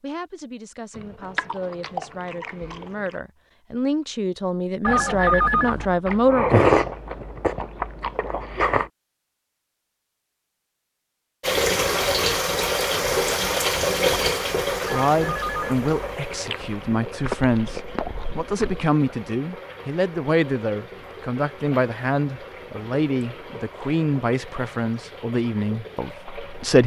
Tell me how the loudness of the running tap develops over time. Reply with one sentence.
The loudness of the running tap goes down.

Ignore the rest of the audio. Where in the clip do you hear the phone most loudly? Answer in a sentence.
The volume of the phone peaks at 5 seconds.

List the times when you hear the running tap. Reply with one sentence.
The running tap can be heard from 11.4 to 26.8 s.